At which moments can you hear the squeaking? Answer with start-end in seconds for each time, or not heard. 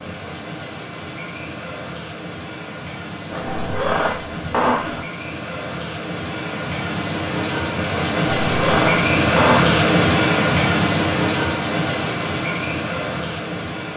3.3-5.0, 8.3-9.7.